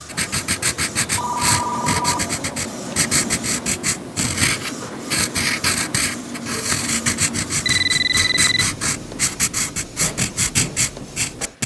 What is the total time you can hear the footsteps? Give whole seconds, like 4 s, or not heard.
not heard.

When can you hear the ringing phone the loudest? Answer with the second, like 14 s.
8 s.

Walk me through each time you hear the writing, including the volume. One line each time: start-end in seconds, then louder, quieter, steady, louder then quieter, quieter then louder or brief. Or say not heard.
0.1-11.6 steady.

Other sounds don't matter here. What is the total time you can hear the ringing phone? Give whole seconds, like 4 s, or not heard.
2 s.